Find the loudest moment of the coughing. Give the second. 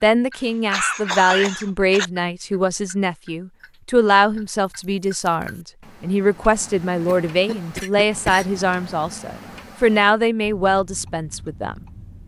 1 s.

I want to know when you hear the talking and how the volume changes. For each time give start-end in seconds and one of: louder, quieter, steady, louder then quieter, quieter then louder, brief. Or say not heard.
0.0-11.8 steady.